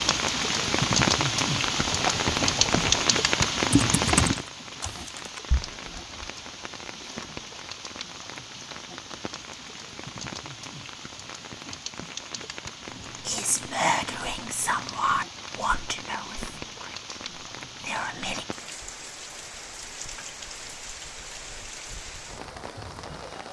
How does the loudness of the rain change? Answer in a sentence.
The loudness of the rain goes down.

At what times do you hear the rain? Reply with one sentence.
The rain can be heard from 0.0 to 23.4 s.